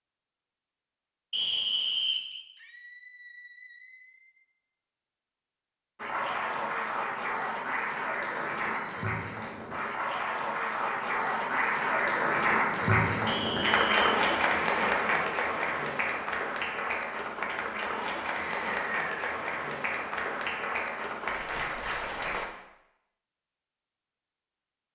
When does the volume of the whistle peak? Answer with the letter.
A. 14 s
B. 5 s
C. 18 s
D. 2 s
D.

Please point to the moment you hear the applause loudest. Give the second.
14 s.